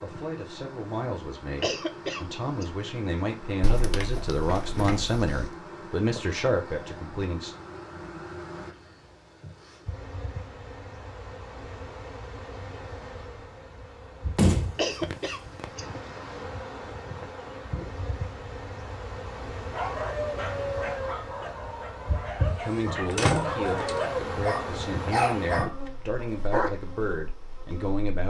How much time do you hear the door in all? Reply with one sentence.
The door can be heard for 5 seconds in total.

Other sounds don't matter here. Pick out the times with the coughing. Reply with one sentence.
The coughing can be heard from 1.6 to 2.6 s and from 14.8 to 16.4 s.